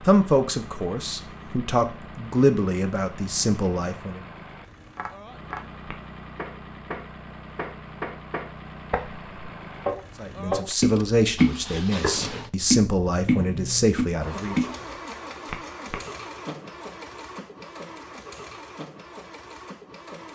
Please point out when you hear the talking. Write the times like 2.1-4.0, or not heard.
0.1-4.2, 10.2-14.7.